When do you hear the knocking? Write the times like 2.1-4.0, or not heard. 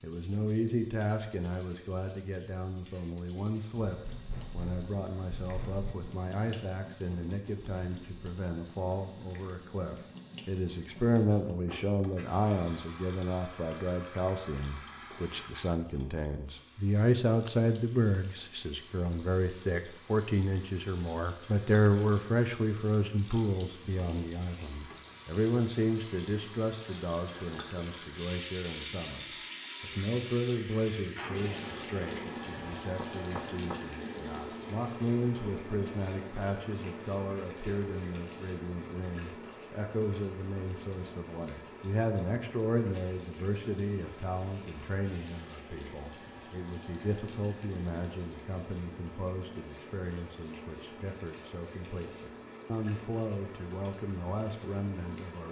4.0-6.0, 33.0-33.8.